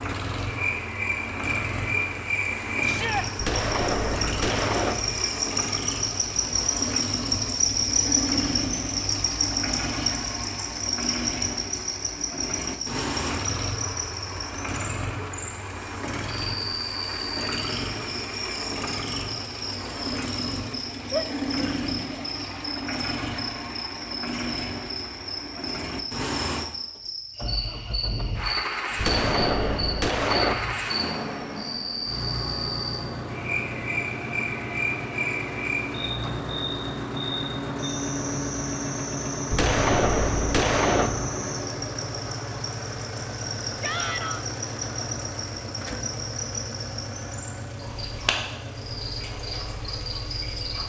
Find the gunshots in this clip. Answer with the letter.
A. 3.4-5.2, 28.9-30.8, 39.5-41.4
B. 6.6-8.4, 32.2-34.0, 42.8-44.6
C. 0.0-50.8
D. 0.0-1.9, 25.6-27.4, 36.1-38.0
A.